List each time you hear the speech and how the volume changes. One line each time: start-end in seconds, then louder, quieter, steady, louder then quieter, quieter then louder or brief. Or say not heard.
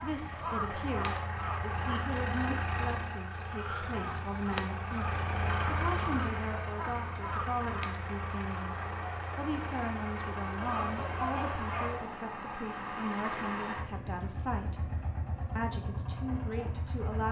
0.0-14.9 steady
15.6-17.2 brief.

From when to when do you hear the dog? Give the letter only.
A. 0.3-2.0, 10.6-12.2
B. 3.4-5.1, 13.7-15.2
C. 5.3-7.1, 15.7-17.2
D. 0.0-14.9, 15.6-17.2
A.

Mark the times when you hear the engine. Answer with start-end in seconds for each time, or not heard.
0.0-17.2.